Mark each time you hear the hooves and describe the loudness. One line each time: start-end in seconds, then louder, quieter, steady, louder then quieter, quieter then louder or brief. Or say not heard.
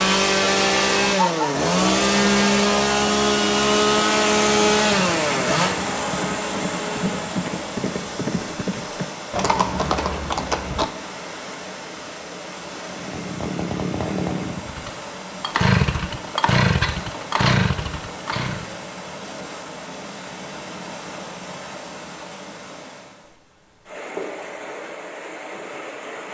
4.8-10.9 louder.